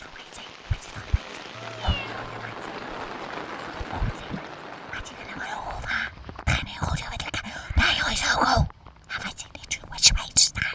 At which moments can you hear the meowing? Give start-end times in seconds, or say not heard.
1.5-2.5, 7.5-8.0.